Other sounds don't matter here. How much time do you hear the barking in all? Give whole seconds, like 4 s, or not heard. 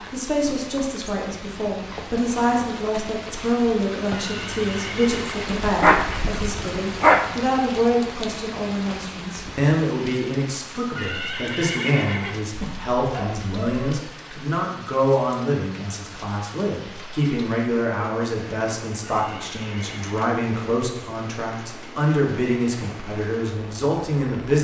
3 s.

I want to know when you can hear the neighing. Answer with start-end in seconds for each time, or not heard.
4.1-5.5, 10.9-12.4, 19.0-20.2.